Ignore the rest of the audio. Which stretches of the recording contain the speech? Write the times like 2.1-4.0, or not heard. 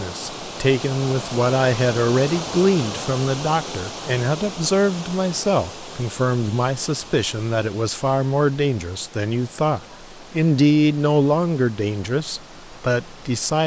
0.0-13.6.